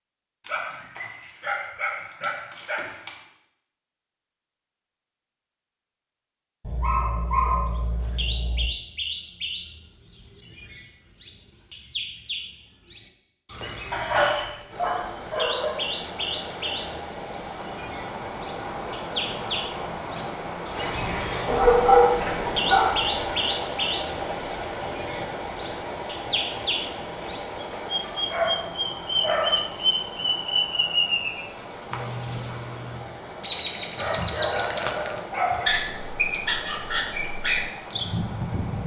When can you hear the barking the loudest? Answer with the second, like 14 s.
22 s.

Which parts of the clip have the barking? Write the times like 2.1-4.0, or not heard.
0.4-3.1, 6.6-8.7, 13.9-15.8, 21.4-23.1, 28.0-29.6, 34.0-35.8.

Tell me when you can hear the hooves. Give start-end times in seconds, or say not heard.
not heard.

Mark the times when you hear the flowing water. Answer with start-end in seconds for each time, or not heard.
14.7-38.8.